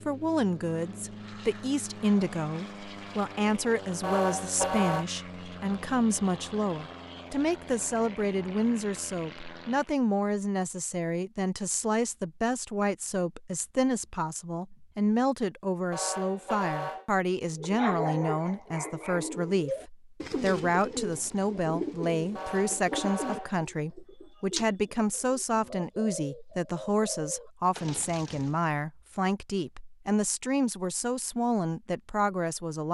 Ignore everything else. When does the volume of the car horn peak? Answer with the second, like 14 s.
5 s.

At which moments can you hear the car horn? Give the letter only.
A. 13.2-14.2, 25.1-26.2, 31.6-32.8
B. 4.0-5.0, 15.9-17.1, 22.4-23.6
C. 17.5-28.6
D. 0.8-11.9
B.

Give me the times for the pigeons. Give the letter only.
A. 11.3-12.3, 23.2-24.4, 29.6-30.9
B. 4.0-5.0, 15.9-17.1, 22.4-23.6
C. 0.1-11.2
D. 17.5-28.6
D.